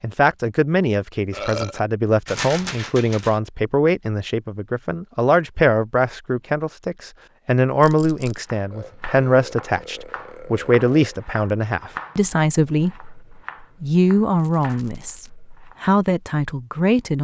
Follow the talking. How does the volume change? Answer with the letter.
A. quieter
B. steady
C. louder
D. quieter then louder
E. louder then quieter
B.